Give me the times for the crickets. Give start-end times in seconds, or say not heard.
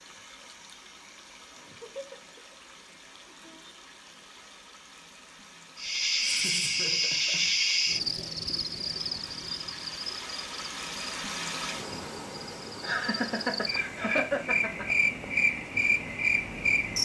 5.8-16.9.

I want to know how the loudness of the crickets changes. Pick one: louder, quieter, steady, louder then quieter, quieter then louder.
quieter then louder.